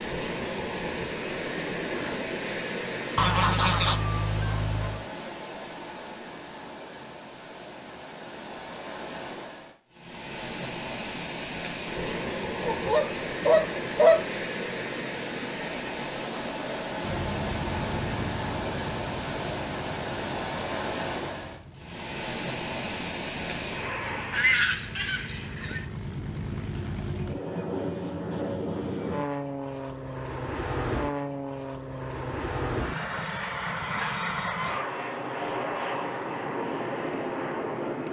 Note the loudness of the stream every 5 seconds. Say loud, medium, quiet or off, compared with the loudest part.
loud, medium, loud, loud, loud, off, off, off.